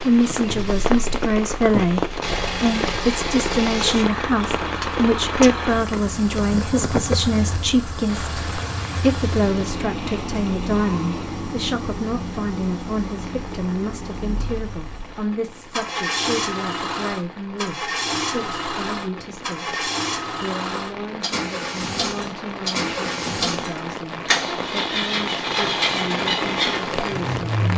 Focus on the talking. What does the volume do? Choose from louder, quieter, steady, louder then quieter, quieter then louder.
quieter.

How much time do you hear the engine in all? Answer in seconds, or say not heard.
28 s.